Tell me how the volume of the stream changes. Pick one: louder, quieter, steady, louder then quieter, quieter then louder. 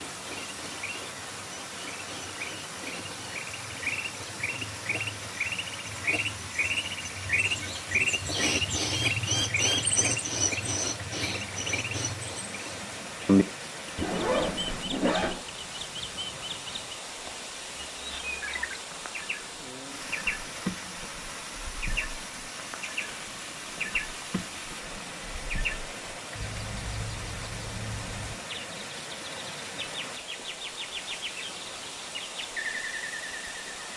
steady.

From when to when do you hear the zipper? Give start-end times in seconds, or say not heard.
13.9-15.4.